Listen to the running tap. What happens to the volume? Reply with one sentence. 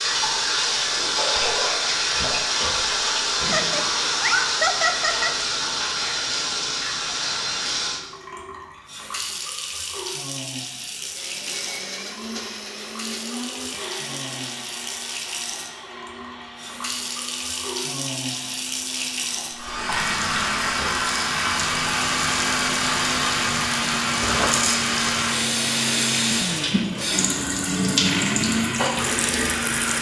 The loudness of the running tap goes down, then up.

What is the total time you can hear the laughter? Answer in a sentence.
The laughter can be heard for 2 seconds in total.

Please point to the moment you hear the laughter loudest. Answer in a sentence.
The loudest moment of the laughter is at 5 seconds.